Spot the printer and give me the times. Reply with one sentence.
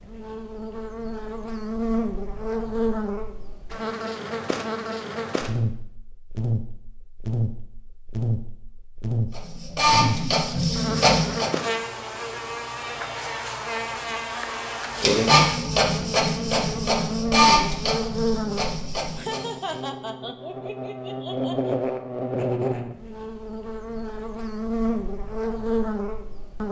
The printer can be heard from 9.3 to 11.6 s and from 14.9 to 19.8 s.